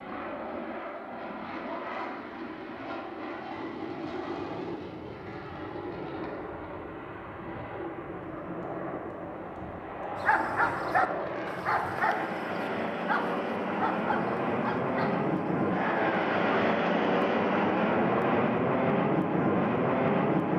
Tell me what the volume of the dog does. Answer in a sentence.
The volume of the dog goes down.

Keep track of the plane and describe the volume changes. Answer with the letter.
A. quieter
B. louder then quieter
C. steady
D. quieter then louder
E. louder
E.